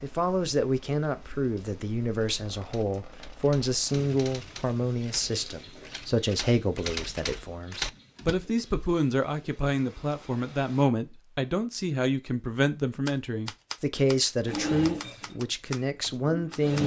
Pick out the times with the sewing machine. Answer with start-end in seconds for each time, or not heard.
14.4-16.8.